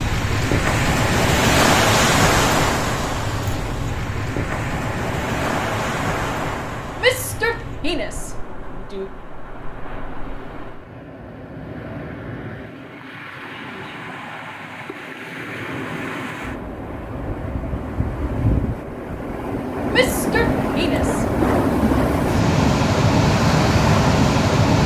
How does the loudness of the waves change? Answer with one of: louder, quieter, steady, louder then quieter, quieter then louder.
quieter then louder.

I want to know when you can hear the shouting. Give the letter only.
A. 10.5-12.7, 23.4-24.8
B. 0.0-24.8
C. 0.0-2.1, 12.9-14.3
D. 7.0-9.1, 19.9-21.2
D.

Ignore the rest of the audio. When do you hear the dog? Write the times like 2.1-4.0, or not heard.
not heard.